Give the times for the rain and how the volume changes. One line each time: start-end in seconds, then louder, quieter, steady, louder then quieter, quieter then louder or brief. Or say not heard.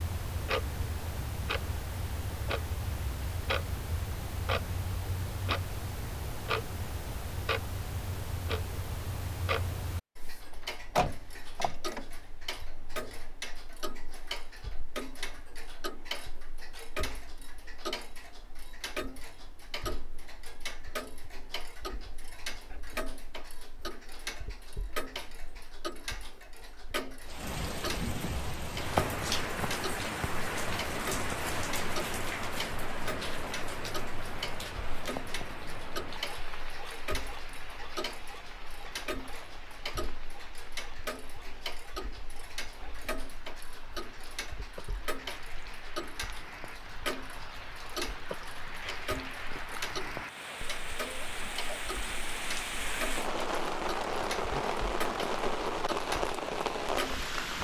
27.2-57.5 quieter then louder.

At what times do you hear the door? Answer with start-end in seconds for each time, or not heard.
10.9-12.1.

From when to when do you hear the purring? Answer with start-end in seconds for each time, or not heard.
not heard.